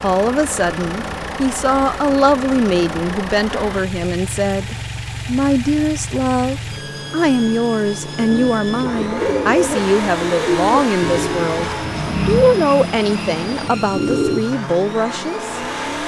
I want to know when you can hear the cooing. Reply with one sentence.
You can hear the cooing from 8.2 to 14.4 s.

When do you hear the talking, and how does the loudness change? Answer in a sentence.
You can hear the talking from 0.0 to 15.6 s, at a steady volume.